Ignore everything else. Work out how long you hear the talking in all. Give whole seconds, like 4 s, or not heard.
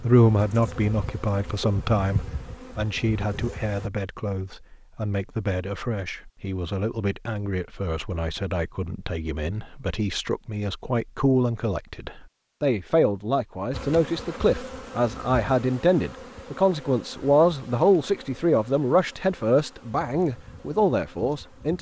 22 s.